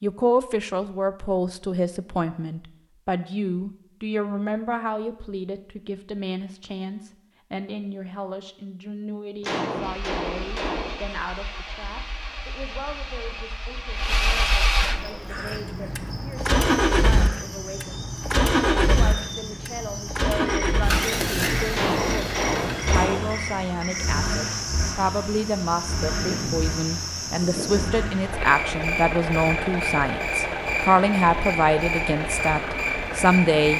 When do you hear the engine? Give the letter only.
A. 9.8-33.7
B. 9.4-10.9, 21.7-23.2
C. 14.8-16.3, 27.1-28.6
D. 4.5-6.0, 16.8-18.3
A.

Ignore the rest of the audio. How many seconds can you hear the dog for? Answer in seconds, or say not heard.
not heard.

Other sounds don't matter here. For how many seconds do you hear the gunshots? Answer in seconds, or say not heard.
3 s.